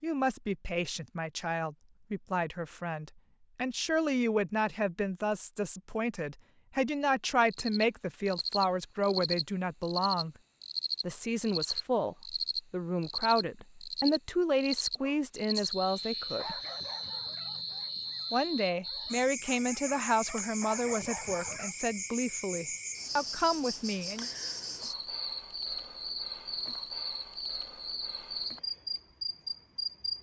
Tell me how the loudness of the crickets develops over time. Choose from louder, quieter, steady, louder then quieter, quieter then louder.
steady.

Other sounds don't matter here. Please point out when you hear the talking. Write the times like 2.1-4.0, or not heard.
0.0-10.3, 11.0-16.6, 18.3-24.3.